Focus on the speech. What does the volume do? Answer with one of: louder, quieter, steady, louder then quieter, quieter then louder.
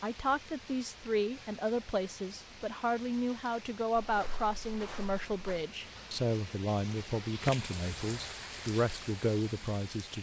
steady.